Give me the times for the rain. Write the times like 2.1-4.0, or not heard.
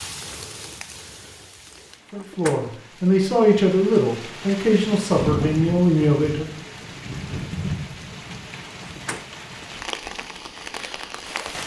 0.0-11.6.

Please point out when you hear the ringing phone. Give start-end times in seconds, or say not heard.
not heard.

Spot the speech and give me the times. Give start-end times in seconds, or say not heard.
2.1-6.6.